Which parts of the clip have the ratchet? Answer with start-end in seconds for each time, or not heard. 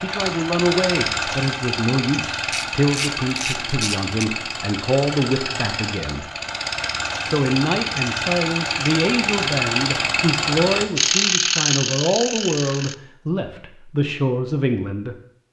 2.4-4.2, 10.9-12.9.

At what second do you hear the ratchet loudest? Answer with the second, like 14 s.
11 s.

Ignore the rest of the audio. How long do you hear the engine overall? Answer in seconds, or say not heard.
11 s.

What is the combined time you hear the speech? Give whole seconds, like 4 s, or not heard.
14 s.